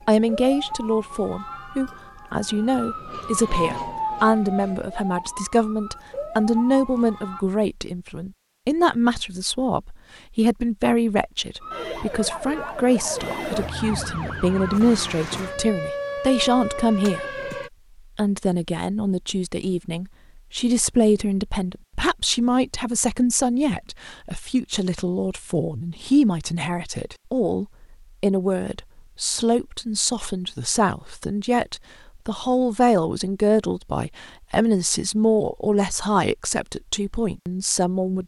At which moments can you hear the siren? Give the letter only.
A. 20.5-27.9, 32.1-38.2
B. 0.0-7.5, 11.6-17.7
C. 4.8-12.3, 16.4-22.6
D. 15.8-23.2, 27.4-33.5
B.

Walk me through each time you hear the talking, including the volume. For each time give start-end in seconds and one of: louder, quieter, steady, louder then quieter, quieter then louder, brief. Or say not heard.
0.1-17.4 steady
18.1-38.2 steady.